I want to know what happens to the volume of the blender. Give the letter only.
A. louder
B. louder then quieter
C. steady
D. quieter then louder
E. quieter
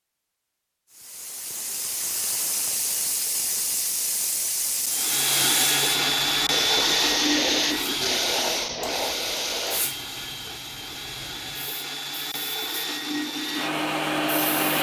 D.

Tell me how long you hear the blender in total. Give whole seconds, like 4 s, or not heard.
10 s.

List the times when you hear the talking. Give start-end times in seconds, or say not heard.
not heard.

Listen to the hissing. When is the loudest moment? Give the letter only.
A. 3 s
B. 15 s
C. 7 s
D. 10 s
C.